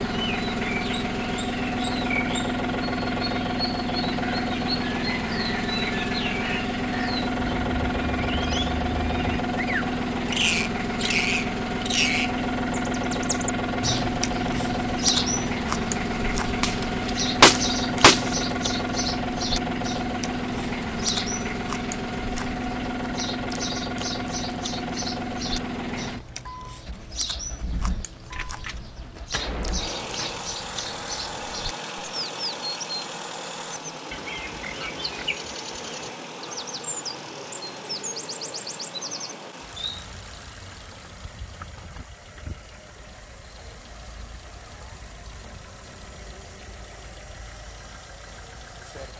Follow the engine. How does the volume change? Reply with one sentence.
The volume of the engine goes down.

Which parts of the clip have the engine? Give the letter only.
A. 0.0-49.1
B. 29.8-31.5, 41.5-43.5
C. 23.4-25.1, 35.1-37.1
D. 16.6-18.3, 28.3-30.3
A.